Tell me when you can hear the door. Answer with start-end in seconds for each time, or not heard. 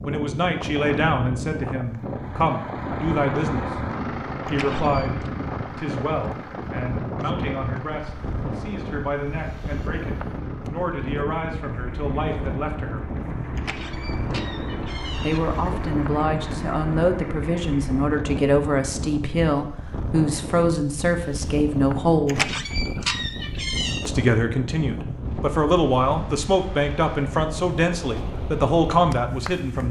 4.5-5.3, 13.6-15.4, 22.2-24.1.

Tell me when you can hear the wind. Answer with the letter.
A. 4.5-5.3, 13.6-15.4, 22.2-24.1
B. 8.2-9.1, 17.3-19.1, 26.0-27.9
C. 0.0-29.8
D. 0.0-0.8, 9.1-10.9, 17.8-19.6
C.